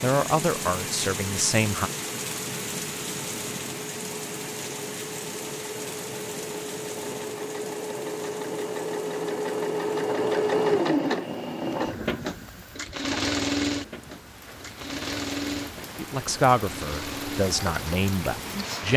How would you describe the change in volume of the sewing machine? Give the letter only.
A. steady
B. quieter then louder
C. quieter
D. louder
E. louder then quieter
E.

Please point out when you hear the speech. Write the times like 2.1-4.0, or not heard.
0.0-1.9, 15.9-18.9.